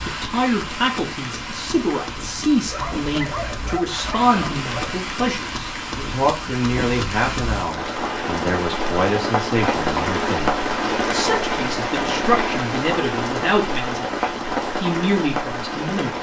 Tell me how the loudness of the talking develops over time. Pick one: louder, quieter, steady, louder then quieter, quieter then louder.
steady.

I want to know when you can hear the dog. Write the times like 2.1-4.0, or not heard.
2.6-5.1.